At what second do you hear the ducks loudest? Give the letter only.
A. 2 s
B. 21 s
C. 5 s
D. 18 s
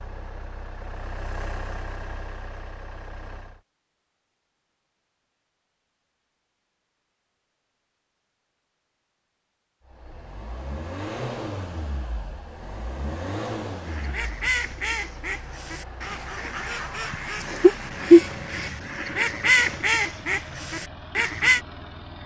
D.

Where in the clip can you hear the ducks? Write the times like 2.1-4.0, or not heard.
13.8-21.6.